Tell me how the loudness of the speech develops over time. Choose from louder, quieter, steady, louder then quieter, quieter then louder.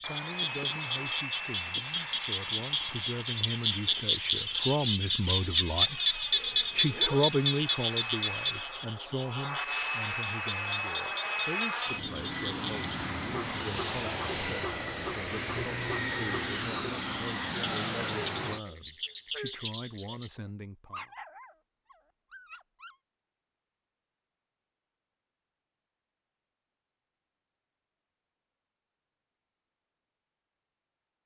louder then quieter.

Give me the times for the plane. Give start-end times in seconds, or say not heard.
0.0-18.6.